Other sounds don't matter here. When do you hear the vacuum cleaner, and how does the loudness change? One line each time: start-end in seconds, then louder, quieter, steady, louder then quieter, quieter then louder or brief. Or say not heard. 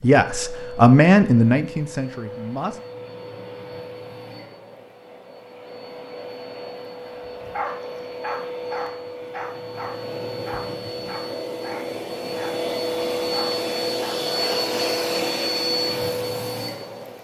0.0-17.1 louder.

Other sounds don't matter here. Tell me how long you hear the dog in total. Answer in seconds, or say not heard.
7 s.